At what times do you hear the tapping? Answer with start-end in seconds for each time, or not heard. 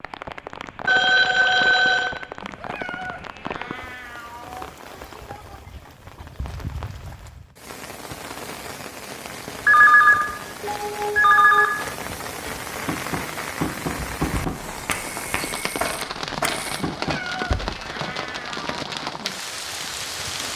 12.8-17.8.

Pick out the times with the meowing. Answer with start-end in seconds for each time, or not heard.
2.4-4.8, 16.9-18.8.